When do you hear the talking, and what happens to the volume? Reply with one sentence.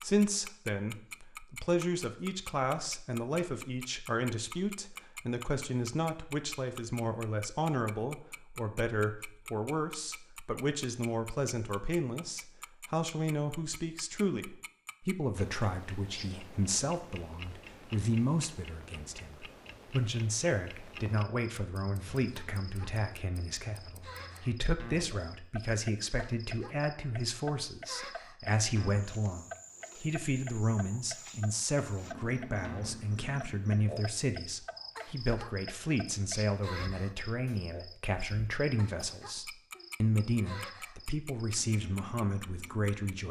The talking can be heard from 0.0 to 43.2 s, at a steady volume.